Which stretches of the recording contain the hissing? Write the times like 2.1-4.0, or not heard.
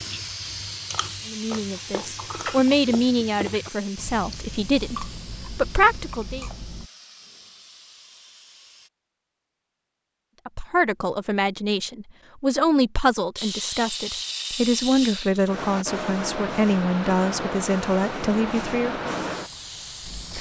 0.0-8.9, 13.3-20.3.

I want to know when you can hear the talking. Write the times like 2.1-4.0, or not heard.
1.2-6.5, 10.4-19.1.